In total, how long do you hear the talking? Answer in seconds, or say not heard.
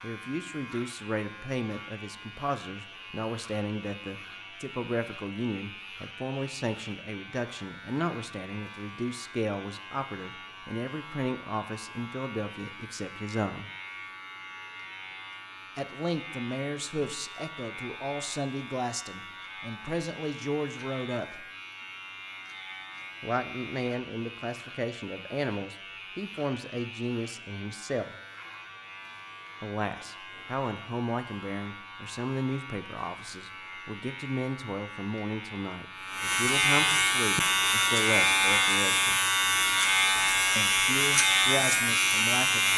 36 s.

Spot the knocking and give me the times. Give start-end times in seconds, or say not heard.
not heard.